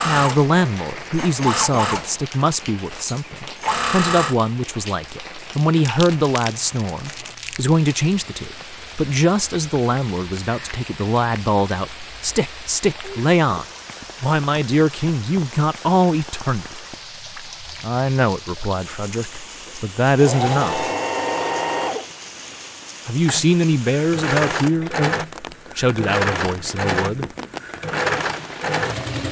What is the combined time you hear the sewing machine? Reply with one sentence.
You can hear the sewing machine for 14 seconds altogether.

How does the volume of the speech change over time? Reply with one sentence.
The volume of the speech stays about the same.